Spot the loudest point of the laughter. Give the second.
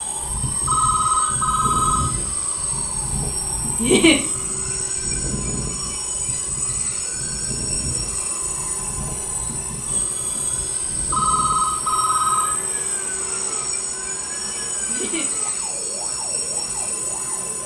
4 s.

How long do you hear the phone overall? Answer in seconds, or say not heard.
3 s.